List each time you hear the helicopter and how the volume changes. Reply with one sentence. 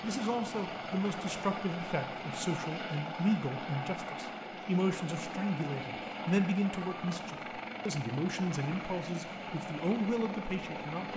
The helicopter can be heard from 0.0 to 11.1 s, at a steady volume.